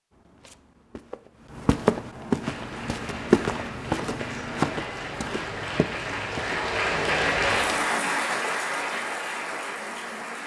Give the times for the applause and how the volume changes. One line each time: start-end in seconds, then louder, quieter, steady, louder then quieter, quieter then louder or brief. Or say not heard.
2.4-10.4 louder then quieter.